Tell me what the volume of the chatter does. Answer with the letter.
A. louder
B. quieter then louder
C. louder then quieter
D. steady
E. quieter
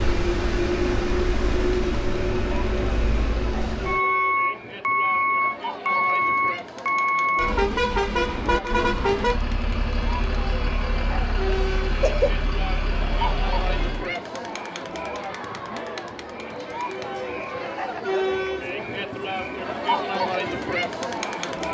A.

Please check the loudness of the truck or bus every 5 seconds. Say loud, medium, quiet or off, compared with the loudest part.
loud, loud, medium, off, off.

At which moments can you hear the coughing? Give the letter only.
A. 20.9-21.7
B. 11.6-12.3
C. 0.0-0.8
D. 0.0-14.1
B.